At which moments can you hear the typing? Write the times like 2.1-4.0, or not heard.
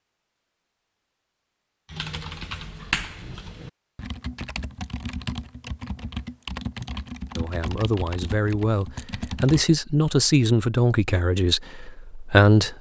1.9-9.7.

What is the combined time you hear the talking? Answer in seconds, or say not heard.
5 s.